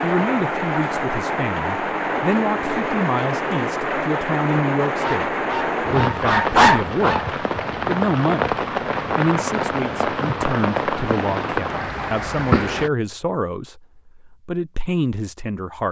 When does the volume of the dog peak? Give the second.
7 s.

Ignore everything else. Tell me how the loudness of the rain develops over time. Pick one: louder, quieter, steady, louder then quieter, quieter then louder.
steady.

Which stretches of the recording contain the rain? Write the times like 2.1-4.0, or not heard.
0.0-12.9.